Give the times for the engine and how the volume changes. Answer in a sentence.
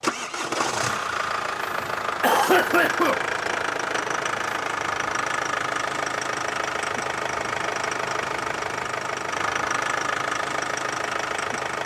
The engine can be heard from 0.0 to 11.8 s, at a steady volume.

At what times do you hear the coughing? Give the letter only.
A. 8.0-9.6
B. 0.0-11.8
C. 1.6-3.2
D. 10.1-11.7
C.